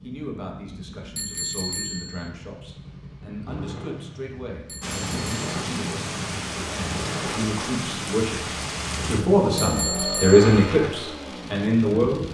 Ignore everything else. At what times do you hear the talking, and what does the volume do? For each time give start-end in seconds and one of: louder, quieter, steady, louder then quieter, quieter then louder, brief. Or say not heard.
0.0-12.2 louder.